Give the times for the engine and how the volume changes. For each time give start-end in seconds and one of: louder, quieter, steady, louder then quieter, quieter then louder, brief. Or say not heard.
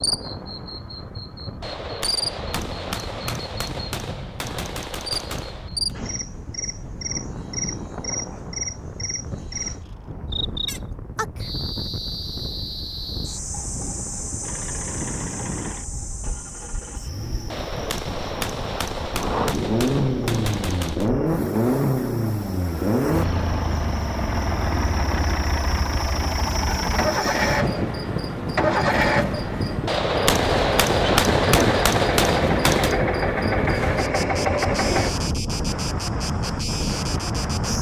14.4-35.1 louder.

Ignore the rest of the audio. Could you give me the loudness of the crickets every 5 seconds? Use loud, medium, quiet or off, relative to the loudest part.
loud, loud, loud, medium, quiet, loud, loud, loud.